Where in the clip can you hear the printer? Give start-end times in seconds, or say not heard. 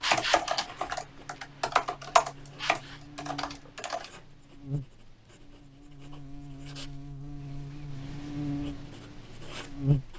not heard.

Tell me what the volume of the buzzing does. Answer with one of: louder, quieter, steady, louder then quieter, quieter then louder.
louder.